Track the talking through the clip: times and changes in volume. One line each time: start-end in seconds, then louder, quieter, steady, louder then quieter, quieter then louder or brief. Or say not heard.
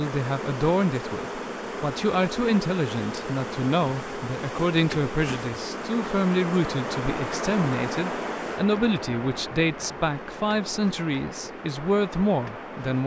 0.0-13.0 steady.